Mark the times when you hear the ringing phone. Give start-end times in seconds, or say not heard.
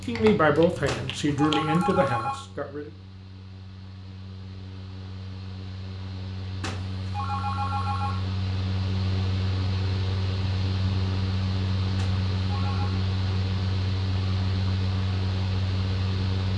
0.8-2.4, 6.6-8.2, 11.9-12.9.